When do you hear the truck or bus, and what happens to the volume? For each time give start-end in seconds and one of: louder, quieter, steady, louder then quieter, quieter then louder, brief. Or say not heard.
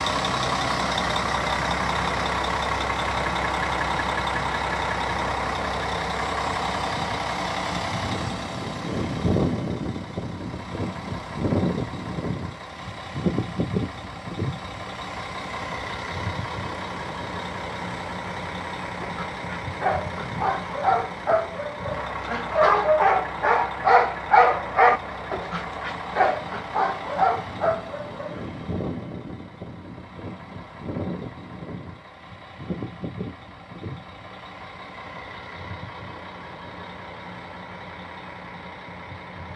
0.0-39.5 quieter.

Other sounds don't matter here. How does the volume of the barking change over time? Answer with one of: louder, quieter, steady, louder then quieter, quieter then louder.
louder then quieter.